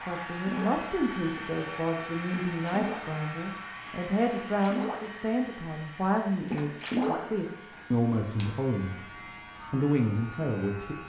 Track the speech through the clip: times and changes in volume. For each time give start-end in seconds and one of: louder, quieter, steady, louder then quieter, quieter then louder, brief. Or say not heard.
0.0-9.1 steady
9.7-11.0 brief.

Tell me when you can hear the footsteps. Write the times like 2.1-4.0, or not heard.
not heard.